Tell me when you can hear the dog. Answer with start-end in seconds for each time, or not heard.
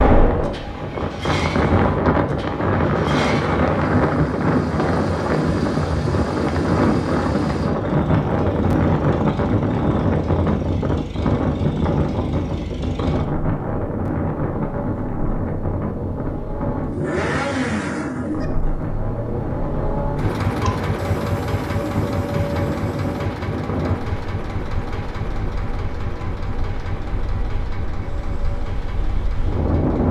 not heard.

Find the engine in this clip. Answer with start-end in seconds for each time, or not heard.
0.2-30.0.